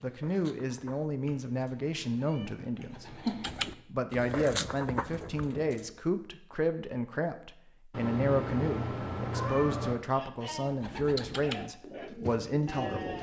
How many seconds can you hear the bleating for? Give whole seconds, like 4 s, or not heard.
3 s.